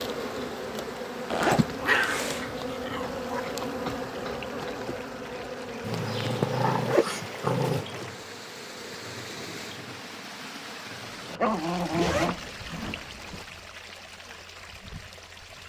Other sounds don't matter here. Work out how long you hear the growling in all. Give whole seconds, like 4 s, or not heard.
5 s.